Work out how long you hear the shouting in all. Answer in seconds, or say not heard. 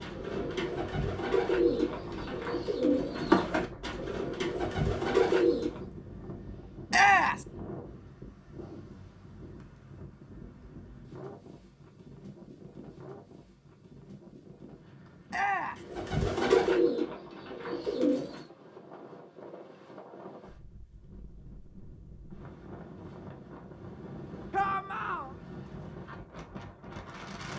2 s.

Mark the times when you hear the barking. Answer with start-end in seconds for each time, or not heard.
not heard.